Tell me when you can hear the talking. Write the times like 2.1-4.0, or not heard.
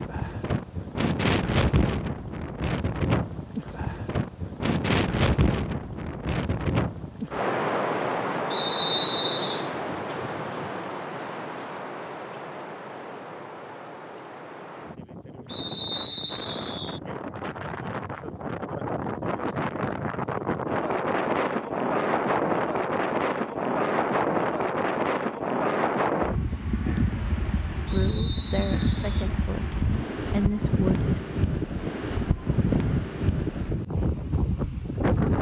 27.9-31.2.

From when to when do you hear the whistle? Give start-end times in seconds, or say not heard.
8.5-9.7, 15.4-17.0, 27.9-29.3.